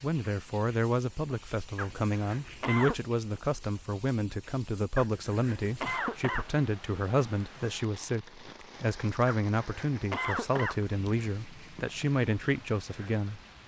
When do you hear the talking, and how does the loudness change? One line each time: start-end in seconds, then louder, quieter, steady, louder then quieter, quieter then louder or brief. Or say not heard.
0.0-13.6 steady.